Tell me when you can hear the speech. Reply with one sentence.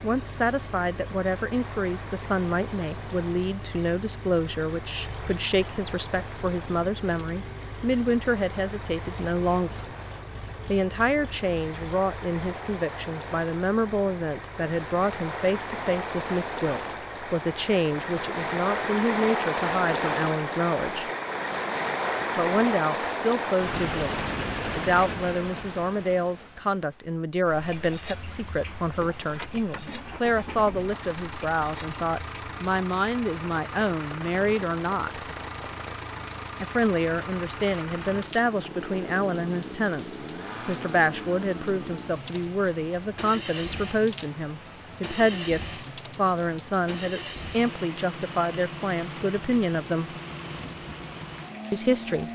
You can hear the speech from 0.0 to 9.8 s, from 10.7 to 21.1 s, from 22.4 to 35.3 s, from 36.6 to 50.1 s and from 51.7 to 52.2 s.